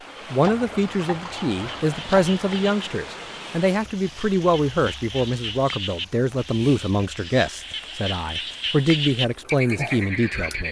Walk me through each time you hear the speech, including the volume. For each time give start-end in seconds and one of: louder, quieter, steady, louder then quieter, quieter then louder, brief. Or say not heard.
0.3-10.6 steady.